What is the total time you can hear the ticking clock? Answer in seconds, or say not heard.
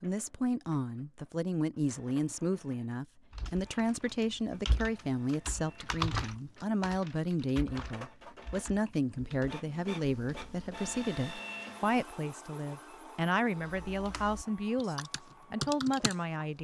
not heard.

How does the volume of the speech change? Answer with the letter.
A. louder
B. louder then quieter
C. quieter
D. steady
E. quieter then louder
D.